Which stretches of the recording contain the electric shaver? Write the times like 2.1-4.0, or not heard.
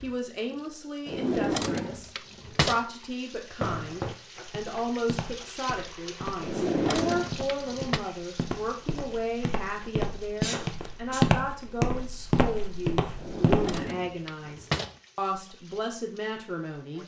not heard.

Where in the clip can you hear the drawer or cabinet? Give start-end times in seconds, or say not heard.
1.1-2.8, 6.4-8.0, 13.2-14.9.